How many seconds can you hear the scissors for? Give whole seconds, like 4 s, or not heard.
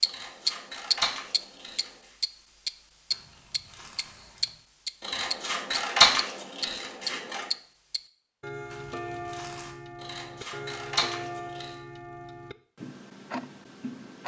6 s.